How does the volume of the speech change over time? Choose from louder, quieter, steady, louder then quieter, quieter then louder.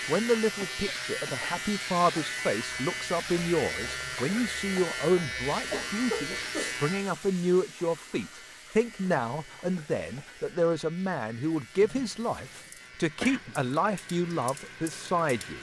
steady.